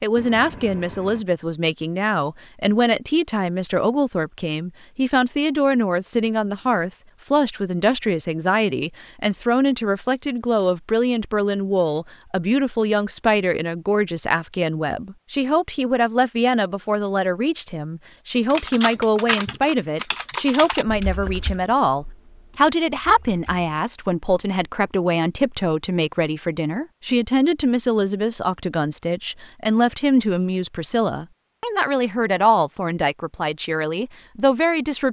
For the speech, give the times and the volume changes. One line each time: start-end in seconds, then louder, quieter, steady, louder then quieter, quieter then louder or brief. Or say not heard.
0.0-35.0 steady.